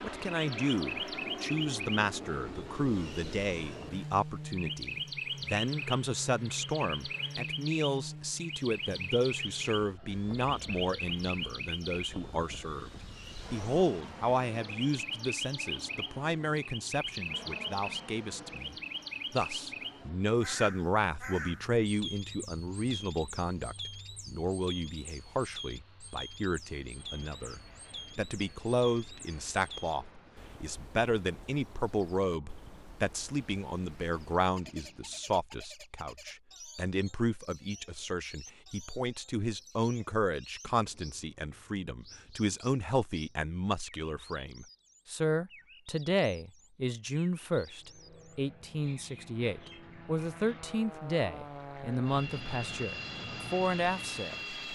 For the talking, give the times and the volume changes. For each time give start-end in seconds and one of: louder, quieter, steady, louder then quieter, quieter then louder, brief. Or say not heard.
0.0-54.7 steady.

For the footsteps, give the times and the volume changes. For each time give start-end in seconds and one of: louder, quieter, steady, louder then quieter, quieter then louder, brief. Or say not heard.
not heard.